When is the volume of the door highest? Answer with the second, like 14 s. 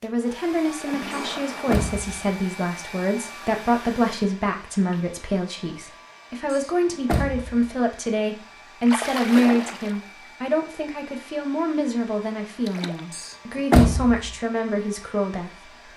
14 s.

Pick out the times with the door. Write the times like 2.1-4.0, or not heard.
1.1-2.1, 6.5-7.7, 13.1-14.3.